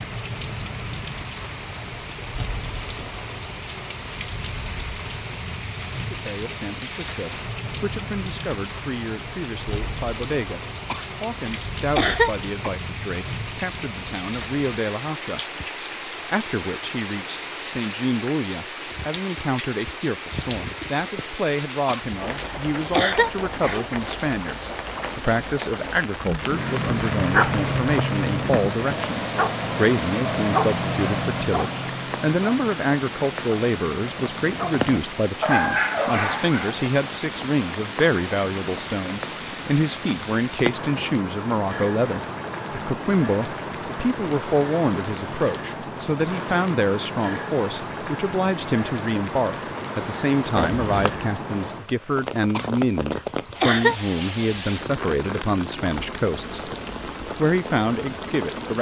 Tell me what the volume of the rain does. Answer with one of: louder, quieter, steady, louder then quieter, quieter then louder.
steady.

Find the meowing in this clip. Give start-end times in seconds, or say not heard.
50.5-51.2.